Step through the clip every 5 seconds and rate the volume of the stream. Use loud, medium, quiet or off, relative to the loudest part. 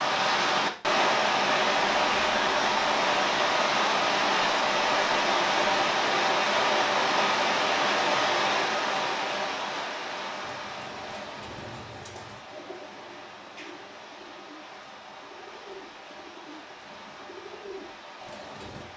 loud, loud, quiet, quiet.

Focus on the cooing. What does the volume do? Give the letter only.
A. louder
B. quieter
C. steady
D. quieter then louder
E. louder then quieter
D.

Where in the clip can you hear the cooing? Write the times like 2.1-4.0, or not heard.
10.4-18.9.